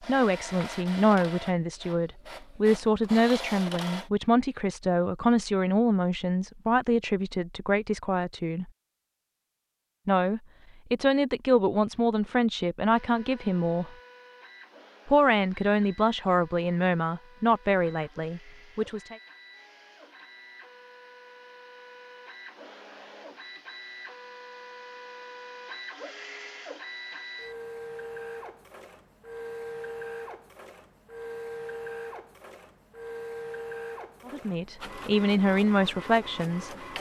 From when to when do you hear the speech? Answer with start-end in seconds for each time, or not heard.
0.1-8.7, 10.1-13.9, 15.1-19.1, 34.2-36.8.